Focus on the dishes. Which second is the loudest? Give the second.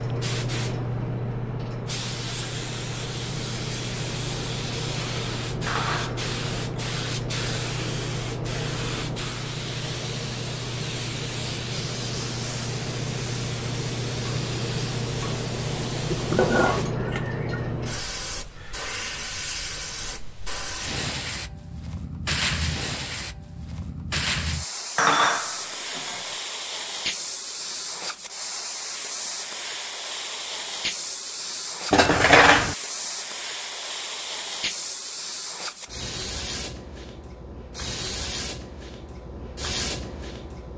32 s.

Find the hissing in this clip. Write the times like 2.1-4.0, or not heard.
0.0-40.7.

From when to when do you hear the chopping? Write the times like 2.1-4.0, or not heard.
not heard.